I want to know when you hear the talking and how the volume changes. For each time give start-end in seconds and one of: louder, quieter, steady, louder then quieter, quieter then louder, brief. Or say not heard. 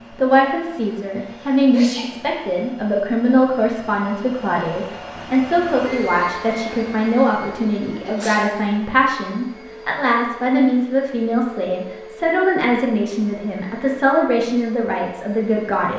0.1-15.9 steady.